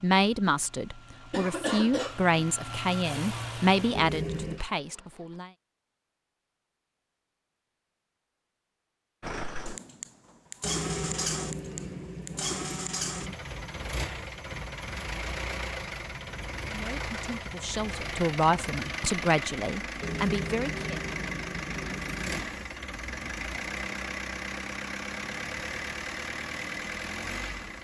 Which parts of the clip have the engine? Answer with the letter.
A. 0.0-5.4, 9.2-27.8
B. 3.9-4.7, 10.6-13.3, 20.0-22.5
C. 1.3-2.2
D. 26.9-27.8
A.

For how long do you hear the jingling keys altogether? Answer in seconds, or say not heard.
6 s.